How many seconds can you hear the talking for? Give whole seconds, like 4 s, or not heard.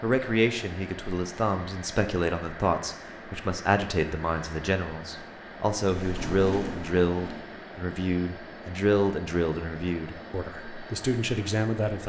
12 s.